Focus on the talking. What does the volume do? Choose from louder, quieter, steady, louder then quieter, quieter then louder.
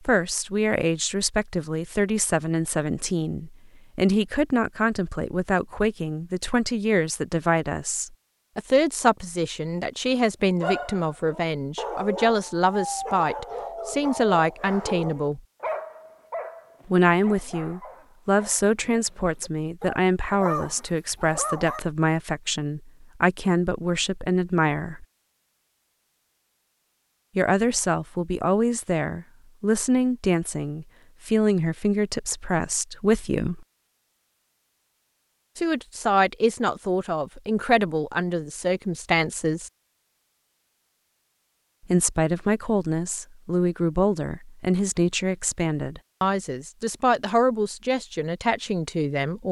steady.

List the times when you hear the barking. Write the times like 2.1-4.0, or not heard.
10.2-21.8.